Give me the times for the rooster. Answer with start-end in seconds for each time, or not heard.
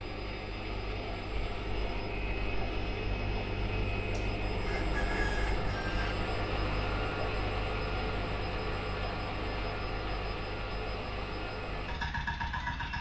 4.1-6.2.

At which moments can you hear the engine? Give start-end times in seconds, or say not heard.
0.0-12.9.